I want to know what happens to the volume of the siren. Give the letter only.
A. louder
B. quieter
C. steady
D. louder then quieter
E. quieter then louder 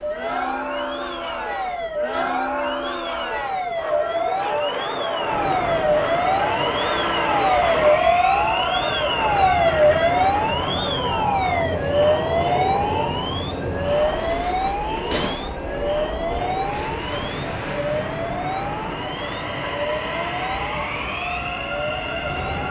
D.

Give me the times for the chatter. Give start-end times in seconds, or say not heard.
0.0-22.6.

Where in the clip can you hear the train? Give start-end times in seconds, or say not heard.
0.0-22.6.